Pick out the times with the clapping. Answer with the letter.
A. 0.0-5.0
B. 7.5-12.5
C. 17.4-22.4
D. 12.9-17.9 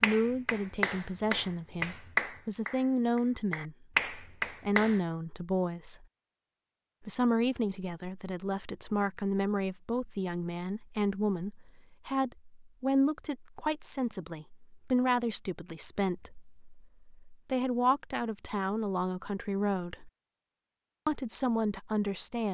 A.